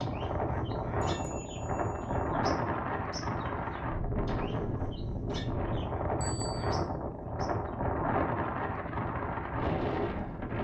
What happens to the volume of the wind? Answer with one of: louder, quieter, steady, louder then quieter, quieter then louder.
steady.